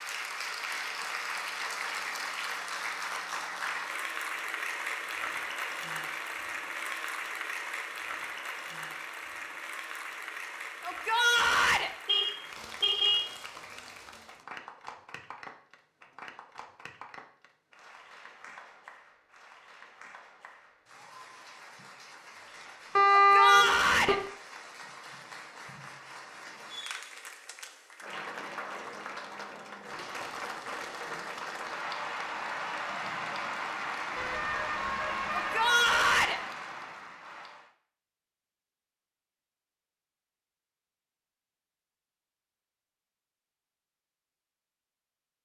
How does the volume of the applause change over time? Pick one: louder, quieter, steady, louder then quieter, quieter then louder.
quieter then louder.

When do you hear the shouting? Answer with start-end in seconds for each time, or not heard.
10.8-11.9, 23.1-24.1, 35.4-36.4.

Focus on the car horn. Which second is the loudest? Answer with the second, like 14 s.
23 s.